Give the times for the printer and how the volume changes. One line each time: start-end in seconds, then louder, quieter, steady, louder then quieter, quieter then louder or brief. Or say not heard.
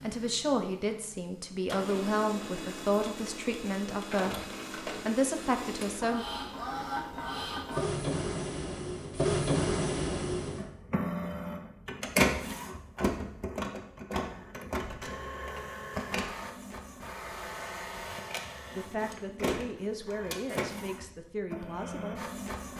0.0-22.7 louder then quieter.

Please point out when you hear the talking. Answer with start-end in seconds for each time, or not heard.
0.0-6.2, 18.8-22.4.